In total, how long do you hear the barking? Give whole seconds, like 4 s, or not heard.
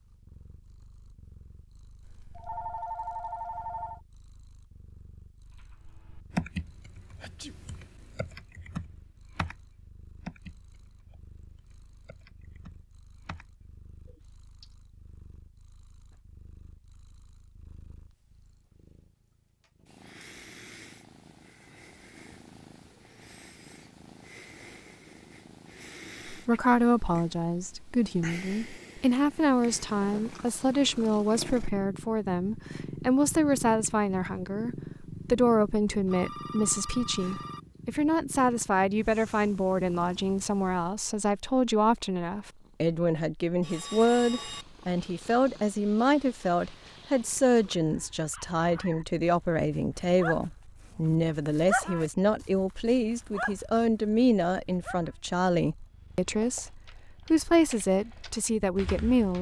7 s.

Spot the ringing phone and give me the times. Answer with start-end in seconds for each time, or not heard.
2.0-4.0, 36.0-37.6, 43.6-44.6.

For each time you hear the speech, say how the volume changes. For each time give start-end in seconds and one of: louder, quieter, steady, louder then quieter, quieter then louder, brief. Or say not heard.
26.2-59.3 steady.